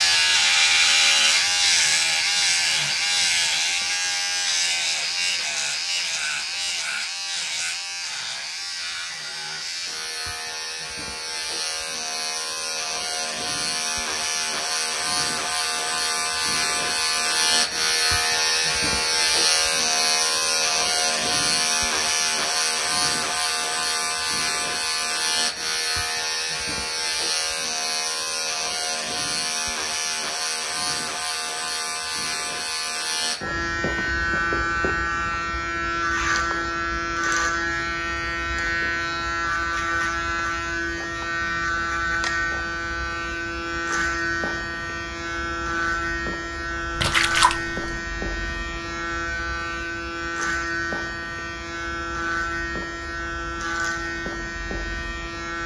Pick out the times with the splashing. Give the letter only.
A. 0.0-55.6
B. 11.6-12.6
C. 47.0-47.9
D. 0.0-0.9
C.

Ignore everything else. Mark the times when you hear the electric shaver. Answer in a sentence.
The electric shaver can be heard from 0.0 to 55.6 s.